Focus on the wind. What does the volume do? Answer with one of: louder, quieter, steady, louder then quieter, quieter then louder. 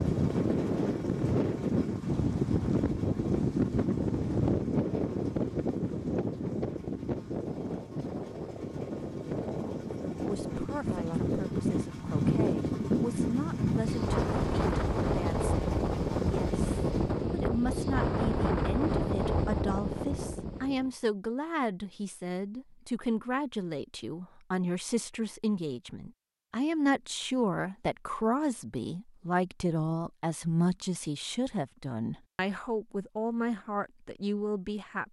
steady.